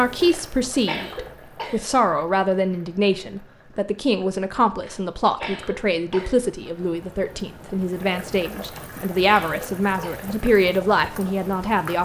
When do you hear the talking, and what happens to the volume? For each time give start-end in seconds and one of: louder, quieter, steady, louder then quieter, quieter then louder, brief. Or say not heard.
0.0-12.0 steady.